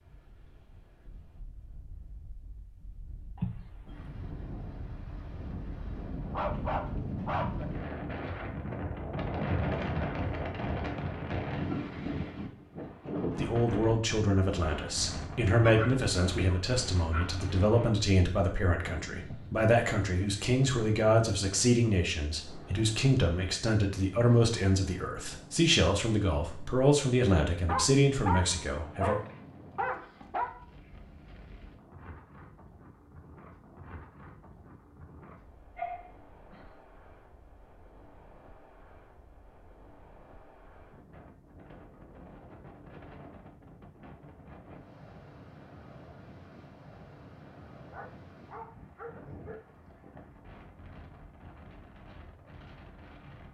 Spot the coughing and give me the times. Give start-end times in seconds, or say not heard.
3.4-4.2.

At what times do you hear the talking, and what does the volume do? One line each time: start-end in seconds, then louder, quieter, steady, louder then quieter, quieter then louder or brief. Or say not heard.
13.3-29.2 steady.